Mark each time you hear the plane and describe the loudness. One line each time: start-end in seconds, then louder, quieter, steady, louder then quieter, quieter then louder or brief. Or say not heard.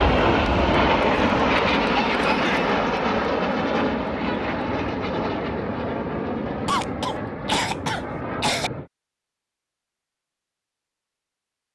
0.0-8.9 quieter.